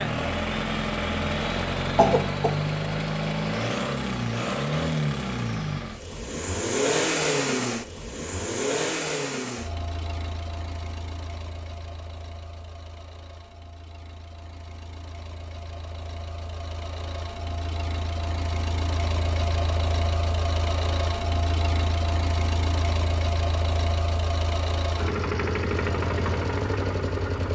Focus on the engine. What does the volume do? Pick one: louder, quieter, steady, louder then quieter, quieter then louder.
quieter then louder.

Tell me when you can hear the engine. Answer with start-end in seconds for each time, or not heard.
0.0-27.5.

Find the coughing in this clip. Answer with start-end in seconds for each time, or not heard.
1.9-2.5.